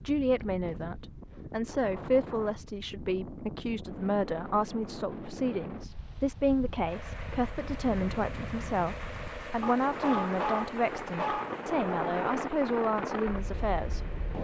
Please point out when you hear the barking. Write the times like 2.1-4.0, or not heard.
9.6-11.6.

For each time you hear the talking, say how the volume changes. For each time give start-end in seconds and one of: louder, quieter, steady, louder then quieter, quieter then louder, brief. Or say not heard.
0.0-14.1 steady.